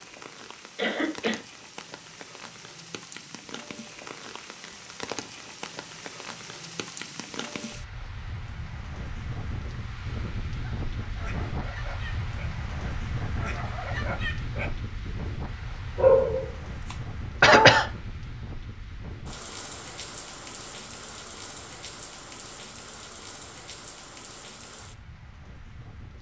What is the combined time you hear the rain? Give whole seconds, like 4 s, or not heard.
26 s.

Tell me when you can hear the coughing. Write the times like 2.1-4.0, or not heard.
0.8-1.4, 17.4-17.9.